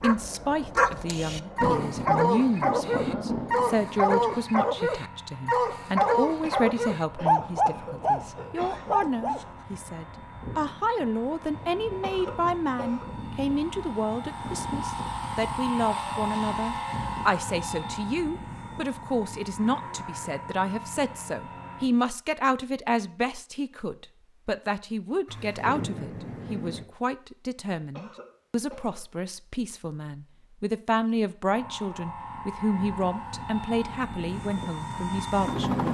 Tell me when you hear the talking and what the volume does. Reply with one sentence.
You can hear the talking from 0.0 to 35.8 s, at a steady volume.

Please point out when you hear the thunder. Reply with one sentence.
You can hear the thunder from 1.6 to 4.4 s and from 25.2 to 26.9 s.